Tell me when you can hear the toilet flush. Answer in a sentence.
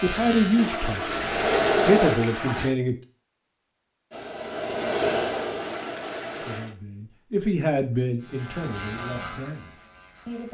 The toilet flush can be heard from 0.6 to 2.8 s and from 5.5 to 6.8 s.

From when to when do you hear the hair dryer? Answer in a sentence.
The hair dryer can be heard from 0.2 to 2.1 s and from 4.1 to 6.6 s.